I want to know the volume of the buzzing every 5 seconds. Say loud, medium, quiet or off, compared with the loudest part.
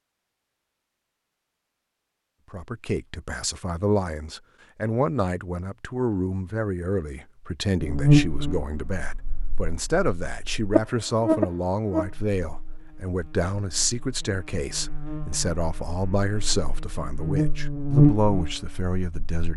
off, loud, medium, loud.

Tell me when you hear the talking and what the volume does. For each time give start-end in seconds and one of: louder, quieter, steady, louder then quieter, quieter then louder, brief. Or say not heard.
2.5-19.5 steady.